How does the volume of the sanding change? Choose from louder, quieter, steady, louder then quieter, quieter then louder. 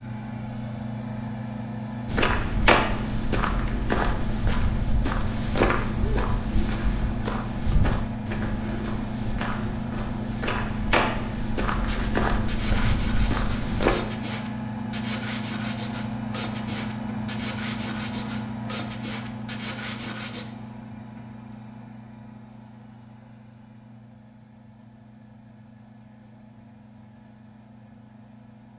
steady.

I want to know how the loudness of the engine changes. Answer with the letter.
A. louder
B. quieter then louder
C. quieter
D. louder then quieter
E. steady
C.